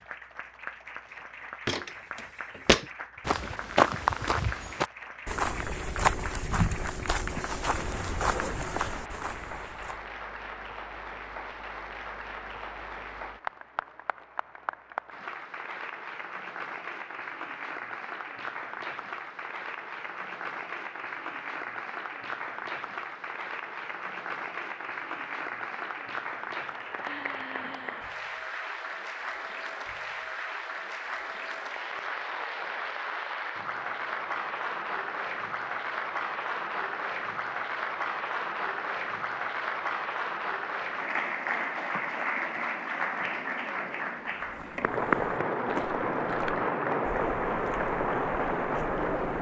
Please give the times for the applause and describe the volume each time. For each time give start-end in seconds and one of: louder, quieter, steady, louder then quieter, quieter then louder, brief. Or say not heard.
0.0-49.3 louder.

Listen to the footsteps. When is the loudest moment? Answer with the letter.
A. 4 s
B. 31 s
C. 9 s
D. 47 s
A.